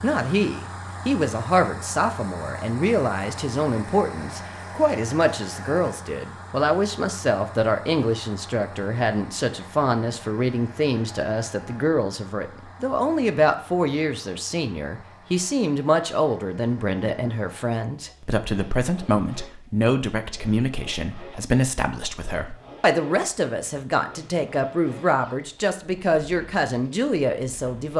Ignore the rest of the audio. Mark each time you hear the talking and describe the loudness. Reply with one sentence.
The talking can be heard from 0.0 to 27.9 s, at a steady volume.